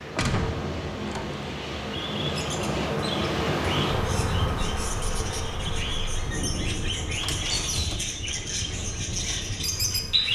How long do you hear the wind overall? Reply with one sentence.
The wind can be heard for 10 seconds in total.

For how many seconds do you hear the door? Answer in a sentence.
The door can be heard for 2 seconds in total.